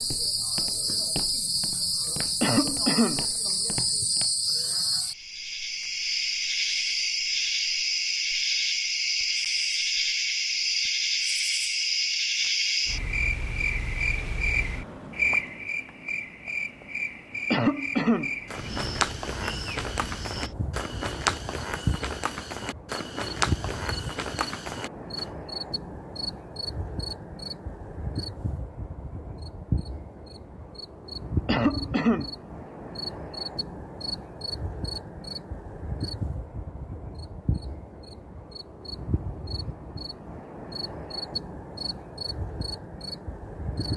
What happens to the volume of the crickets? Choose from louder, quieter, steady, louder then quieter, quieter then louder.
quieter.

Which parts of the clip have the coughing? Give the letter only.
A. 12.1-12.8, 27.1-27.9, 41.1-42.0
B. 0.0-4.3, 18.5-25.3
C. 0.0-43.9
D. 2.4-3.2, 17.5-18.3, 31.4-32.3
D.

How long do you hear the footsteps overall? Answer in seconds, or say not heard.
11 s.